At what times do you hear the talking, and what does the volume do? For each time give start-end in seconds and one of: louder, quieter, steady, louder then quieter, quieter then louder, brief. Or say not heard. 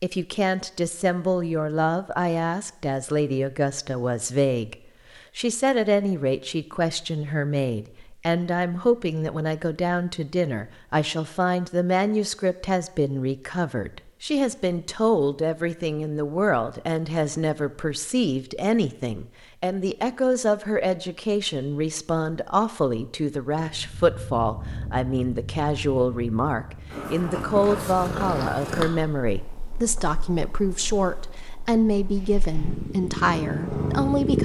0.0-34.3 steady.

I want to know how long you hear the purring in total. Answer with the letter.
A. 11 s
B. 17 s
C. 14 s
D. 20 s
A.